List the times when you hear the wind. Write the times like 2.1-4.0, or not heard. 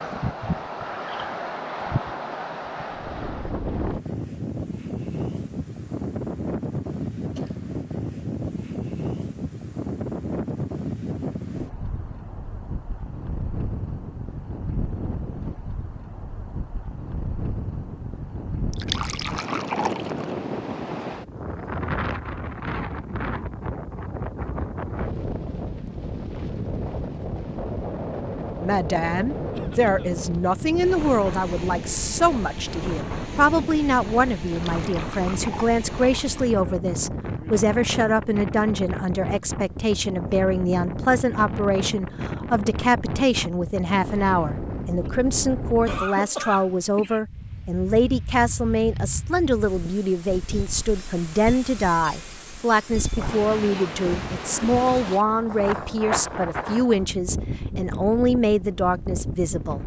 0.0-59.8.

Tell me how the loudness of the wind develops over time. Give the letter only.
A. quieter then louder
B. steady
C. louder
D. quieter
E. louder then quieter
B.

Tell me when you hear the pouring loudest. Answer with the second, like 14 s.
19 s.